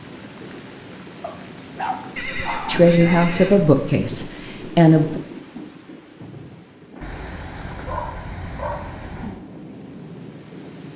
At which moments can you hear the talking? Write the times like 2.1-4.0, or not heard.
2.6-5.2.